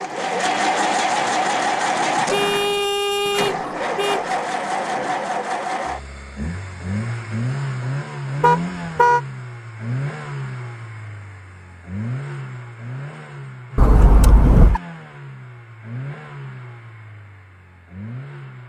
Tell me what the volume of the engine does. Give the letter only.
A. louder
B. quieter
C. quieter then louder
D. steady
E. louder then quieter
B.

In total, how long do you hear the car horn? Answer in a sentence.
The car horn can be heard for 4 seconds in total.